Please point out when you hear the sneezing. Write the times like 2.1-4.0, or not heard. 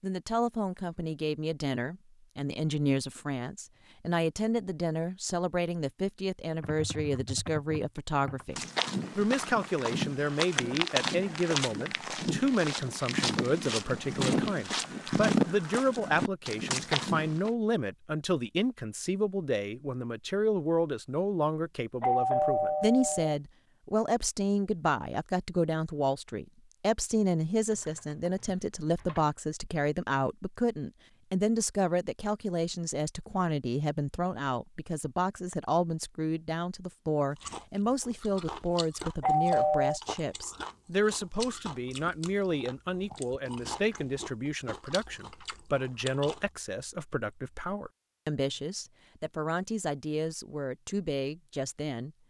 not heard.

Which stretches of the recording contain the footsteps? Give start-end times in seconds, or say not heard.
8.5-17.5.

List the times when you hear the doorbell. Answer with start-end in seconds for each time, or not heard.
22.0-23.4, 39.2-40.0.